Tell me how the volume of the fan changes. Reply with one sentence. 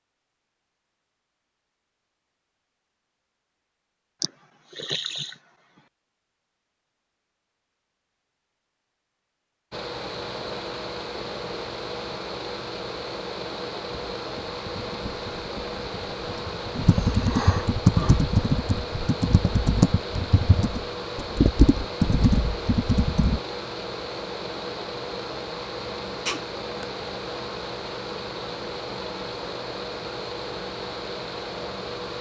The loudness of the fan stays about the same.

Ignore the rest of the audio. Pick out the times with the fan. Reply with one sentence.
The fan can be heard from 9.7 to 32.1 s.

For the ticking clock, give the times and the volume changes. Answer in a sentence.
The ticking clock can't be heard in this clip.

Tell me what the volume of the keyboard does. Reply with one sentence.
The loudness of the keyboard goes up.